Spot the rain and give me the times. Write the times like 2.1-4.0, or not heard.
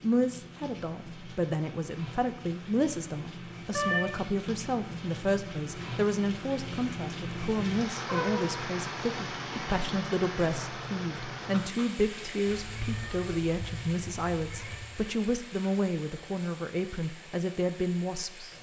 0.0-18.5.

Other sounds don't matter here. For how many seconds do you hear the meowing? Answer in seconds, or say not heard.
4 s.